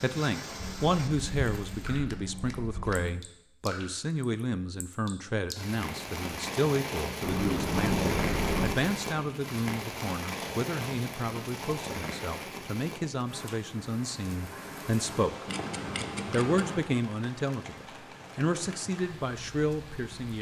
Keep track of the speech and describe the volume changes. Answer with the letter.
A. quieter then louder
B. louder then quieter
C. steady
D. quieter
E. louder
C.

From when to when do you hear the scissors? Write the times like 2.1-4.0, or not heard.
0.6-3.2, 7.2-8.8, 15.4-16.8.